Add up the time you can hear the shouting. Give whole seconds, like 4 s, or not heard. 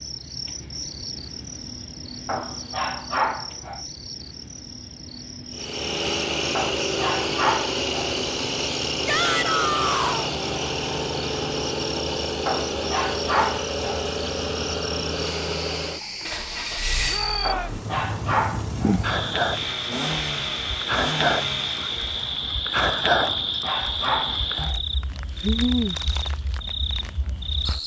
2 s.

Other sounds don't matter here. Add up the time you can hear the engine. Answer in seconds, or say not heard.
17 s.